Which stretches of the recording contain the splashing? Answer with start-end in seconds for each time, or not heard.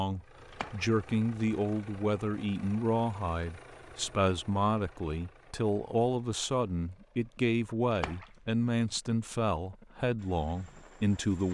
0.5-0.9, 7.9-8.6.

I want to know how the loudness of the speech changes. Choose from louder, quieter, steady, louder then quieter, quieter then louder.
steady.